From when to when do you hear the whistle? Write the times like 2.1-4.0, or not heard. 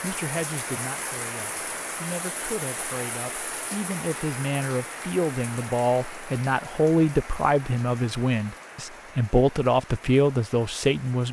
not heard.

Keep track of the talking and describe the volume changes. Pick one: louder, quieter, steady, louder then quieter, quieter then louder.
louder.